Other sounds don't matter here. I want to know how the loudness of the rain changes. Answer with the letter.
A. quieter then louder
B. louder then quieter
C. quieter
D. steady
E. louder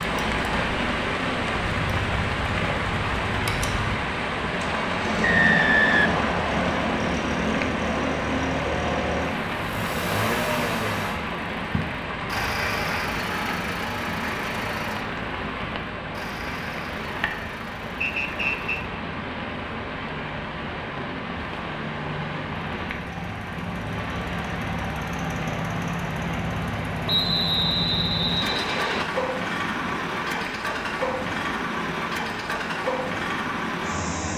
C.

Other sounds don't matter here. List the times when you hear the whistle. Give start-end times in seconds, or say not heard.
5.2-7.0, 18.0-18.8, 27.1-29.1.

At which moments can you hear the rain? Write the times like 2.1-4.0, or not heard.
0.0-34.3.